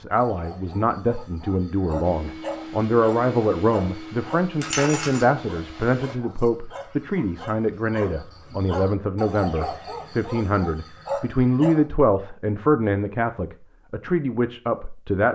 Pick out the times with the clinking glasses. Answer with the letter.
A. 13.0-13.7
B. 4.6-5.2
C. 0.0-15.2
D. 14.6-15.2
B.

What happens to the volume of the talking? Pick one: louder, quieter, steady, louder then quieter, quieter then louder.
steady.